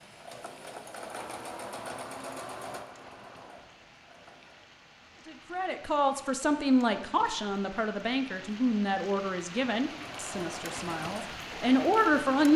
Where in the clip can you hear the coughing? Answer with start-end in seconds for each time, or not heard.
not heard.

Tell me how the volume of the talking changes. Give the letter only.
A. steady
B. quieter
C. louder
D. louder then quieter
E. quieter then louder
E.